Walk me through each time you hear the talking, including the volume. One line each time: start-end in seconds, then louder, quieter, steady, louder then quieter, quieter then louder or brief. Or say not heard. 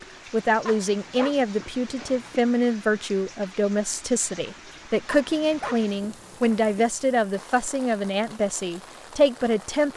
0.0-9.9 steady.